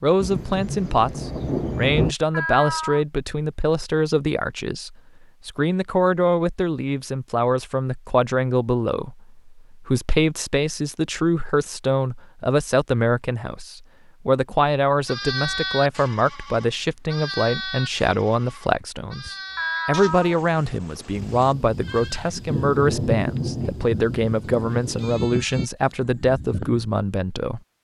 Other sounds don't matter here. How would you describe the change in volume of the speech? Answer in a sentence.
The loudness of the speech stays about the same.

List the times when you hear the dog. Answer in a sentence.
You can't hear the dog here.